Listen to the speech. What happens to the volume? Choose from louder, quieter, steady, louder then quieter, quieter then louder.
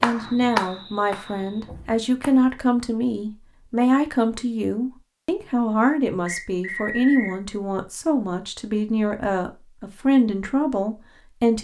steady.